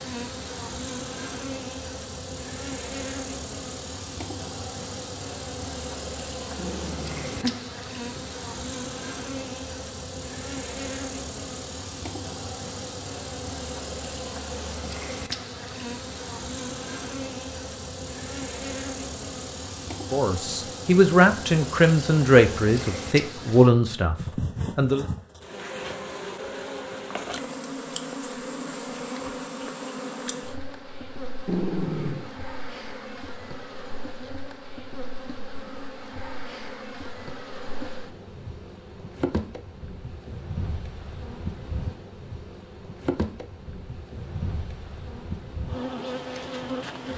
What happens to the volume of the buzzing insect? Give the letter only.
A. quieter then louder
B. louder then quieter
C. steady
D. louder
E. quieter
C.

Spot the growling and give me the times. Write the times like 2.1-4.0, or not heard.
6.5-8.2, 31.4-32.3.